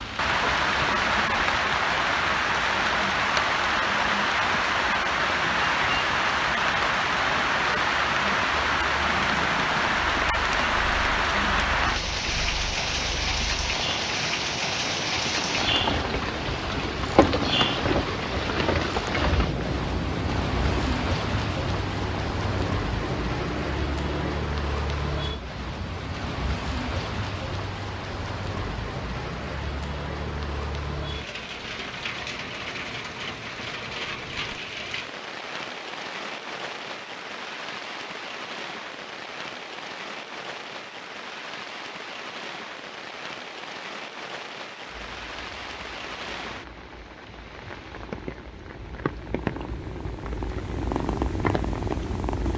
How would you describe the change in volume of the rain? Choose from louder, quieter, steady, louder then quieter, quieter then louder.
quieter.